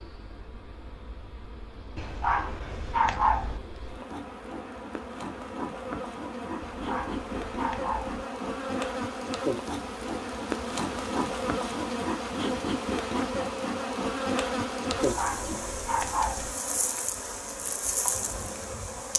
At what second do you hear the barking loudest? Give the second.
3 s.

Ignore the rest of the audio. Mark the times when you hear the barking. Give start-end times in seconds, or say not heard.
1.9-3.6, 6.6-8.2, 14.9-16.6.